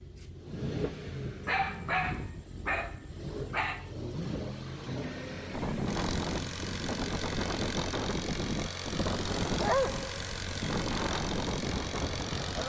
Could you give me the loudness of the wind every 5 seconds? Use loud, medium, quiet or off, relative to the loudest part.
off, loud, loud.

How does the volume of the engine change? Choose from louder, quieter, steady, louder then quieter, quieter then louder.
steady.